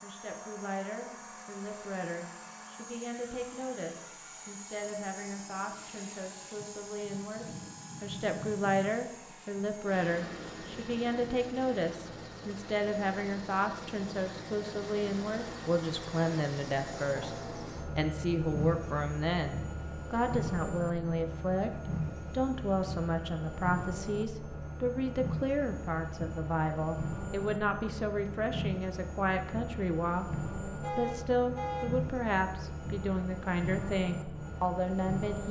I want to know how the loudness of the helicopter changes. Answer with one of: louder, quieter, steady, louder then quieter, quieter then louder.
louder.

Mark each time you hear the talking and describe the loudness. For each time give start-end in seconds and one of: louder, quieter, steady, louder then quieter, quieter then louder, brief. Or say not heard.
0.0-35.4 louder.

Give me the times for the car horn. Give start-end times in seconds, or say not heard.
30.8-31.9.